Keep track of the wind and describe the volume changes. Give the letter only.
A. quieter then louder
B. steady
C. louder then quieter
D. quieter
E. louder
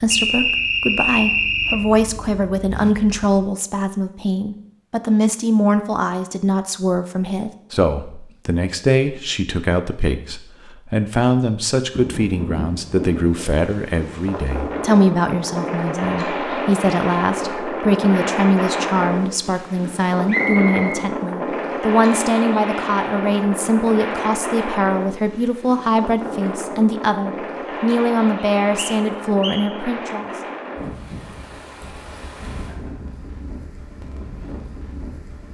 D.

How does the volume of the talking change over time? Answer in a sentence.
The volume of the talking stays about the same.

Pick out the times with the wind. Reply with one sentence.
The wind can be heard from 11.9 to 35.4 s.